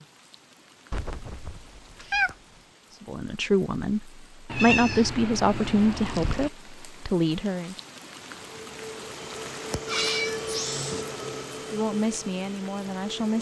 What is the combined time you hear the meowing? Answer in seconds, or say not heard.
5 s.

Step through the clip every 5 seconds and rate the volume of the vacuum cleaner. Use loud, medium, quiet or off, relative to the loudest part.
off, loud, loud.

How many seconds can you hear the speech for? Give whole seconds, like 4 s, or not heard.
6 s.